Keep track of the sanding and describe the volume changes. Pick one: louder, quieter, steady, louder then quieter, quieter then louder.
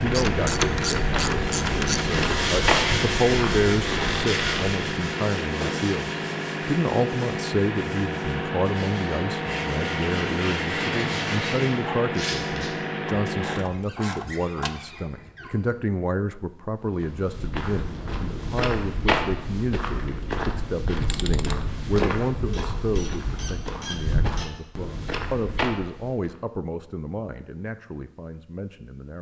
quieter then louder.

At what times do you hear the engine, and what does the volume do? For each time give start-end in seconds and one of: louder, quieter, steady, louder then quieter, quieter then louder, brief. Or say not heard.
0.0-13.7 steady.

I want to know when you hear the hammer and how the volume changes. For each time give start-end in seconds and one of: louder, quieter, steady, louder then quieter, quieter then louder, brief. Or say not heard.
not heard.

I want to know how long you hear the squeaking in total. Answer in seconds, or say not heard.
5 s.